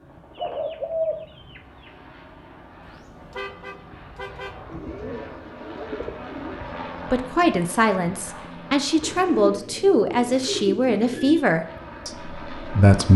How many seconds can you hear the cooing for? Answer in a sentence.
You can hear the cooing for 6 seconds altogether.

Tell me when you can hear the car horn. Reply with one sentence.
You can hear the car horn from 2.8 to 4.6 s.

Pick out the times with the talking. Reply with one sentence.
The talking can be heard from 7.1 to 13.1 s.